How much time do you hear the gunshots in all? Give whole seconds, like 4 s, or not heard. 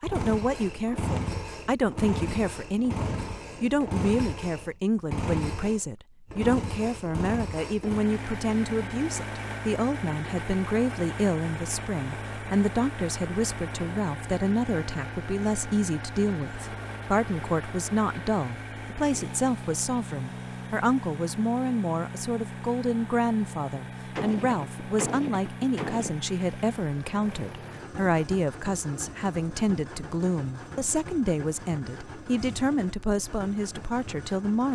2 s.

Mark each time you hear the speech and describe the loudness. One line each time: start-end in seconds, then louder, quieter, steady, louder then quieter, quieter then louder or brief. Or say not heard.
0.0-34.7 steady.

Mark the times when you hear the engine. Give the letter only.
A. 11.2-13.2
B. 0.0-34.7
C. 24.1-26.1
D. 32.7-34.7
B.